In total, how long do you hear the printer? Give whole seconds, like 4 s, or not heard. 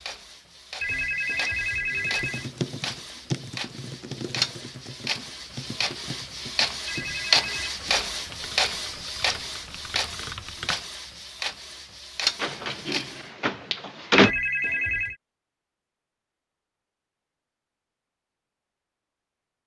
13 s.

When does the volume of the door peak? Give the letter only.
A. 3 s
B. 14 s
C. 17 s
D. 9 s
B.